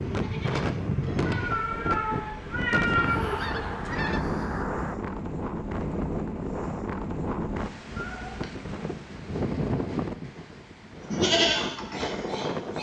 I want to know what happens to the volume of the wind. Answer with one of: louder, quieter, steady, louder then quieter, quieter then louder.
steady.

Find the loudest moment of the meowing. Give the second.
3 s.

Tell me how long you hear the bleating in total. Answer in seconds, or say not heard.
3 s.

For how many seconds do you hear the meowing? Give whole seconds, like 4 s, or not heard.
3 s.